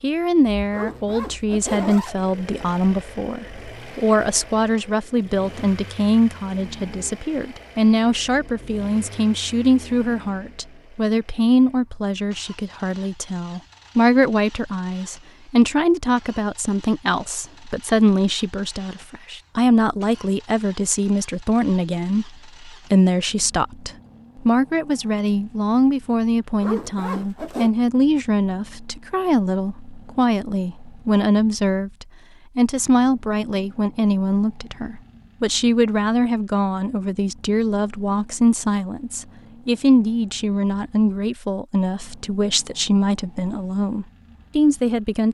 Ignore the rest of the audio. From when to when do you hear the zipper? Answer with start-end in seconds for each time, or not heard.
0.7-2.1, 26.6-27.7.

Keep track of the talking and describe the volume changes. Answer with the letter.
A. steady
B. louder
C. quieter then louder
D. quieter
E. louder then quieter
A.